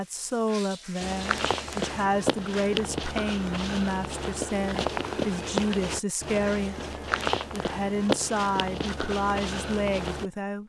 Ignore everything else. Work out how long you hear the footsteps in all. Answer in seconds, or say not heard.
9 s.